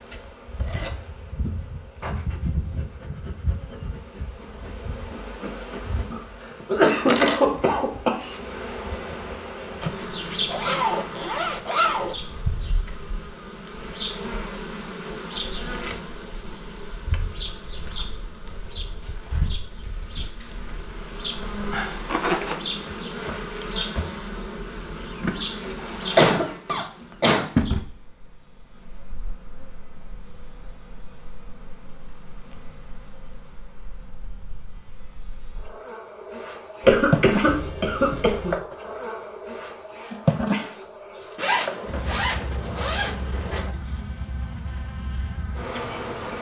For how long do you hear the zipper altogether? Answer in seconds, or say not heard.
5 s.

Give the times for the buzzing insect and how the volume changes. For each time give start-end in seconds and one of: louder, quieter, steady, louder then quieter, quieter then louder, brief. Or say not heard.
0.0-46.3 quieter then louder.